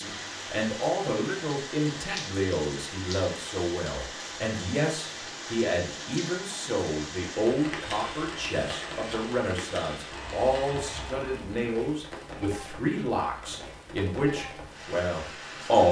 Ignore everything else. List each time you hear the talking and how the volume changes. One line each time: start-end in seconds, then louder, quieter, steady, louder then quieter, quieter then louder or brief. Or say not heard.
0.0-15.8 steady.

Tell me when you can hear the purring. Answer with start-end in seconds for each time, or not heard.
not heard.